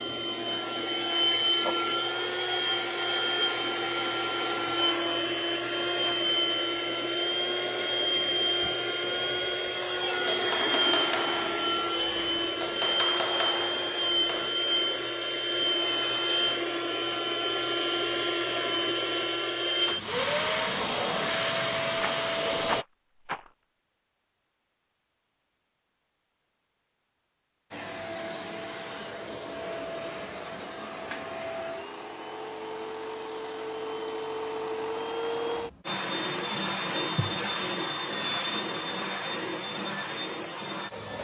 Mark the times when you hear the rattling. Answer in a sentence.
The rattling can be heard from 22.0 to 23.5 s.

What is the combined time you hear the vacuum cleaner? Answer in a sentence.
The vacuum cleaner can be heard for 36 seconds in total.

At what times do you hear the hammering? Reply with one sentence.
The hammering can be heard from 8.6 to 14.5 s.